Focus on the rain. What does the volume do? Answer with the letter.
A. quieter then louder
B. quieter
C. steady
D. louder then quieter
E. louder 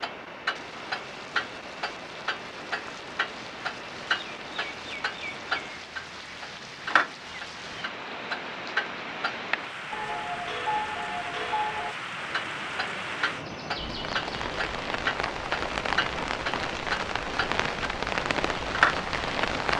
E.